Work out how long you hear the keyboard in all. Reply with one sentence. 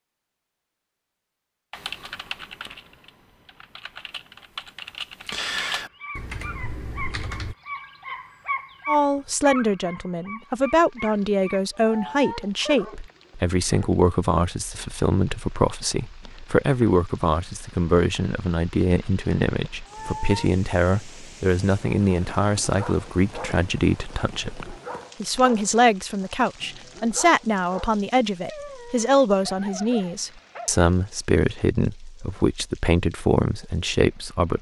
You can hear the keyboard for 6 seconds altogether.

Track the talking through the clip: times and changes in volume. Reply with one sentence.
You can hear the talking from 8.8 to 34.5 s, at a steady volume.